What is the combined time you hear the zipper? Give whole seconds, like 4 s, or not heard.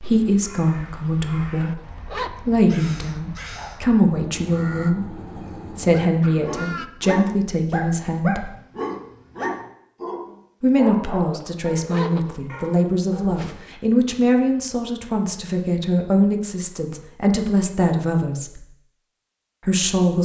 2 s.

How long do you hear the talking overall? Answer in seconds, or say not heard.
17 s.